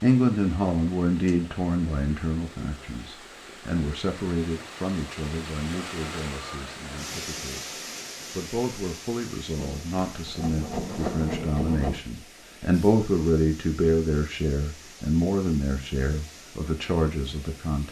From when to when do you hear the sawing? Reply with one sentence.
The sawing can be heard from 9.6 to 12.0 s.